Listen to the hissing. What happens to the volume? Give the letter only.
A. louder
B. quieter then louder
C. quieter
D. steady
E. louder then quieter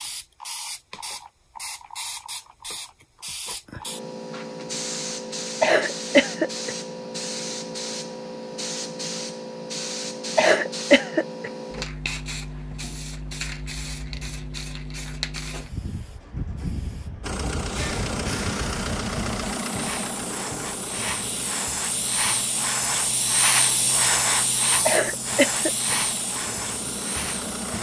A.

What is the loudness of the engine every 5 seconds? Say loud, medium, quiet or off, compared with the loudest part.
off, off, off, loud, medium, medium.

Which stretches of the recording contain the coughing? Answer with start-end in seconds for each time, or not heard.
5.6-6.8, 10.3-11.5, 24.9-25.9.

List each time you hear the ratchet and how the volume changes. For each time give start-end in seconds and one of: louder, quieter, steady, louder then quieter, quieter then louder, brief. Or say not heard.
not heard.